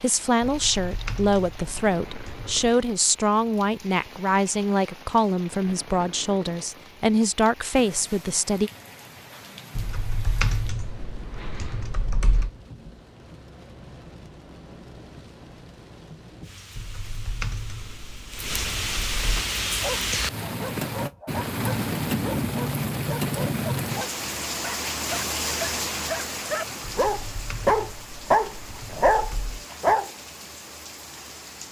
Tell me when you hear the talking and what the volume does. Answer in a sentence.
You can hear the talking from 0.0 to 8.7 s, at a steady volume.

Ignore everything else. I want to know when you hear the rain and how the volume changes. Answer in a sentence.
The rain can be heard from 0.0 to 31.6 s, getting louder then quieter.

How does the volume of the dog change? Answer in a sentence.
The volume of the dog goes up.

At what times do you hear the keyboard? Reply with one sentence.
You can hear the keyboard from 0.4 to 2.8 s, from 9.8 to 12.5 s, from 16.8 to 19.4 s and from 27.0 to 29.6 s.